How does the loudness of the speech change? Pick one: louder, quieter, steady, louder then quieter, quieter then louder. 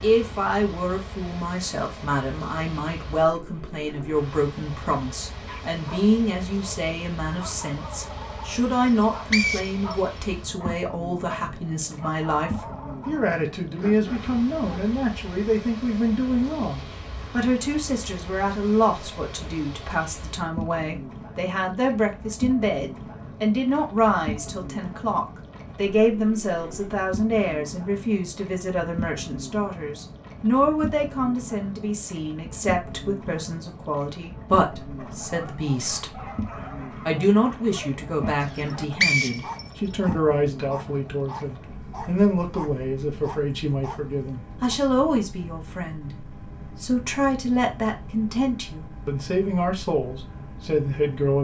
steady.